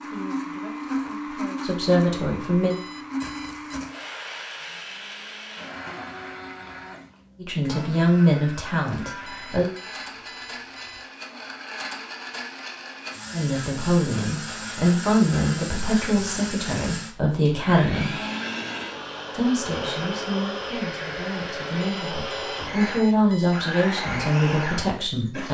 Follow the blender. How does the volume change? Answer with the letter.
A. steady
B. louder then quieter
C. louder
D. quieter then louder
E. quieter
D.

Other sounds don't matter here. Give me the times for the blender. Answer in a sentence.
The blender can be heard from 0.0 to 25.5 s.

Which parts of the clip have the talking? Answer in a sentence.
The talking can be heard from 0.0 to 2.8 s, from 7.4 to 9.7 s, from 13.3 to 18.1 s and from 19.4 to 25.5 s.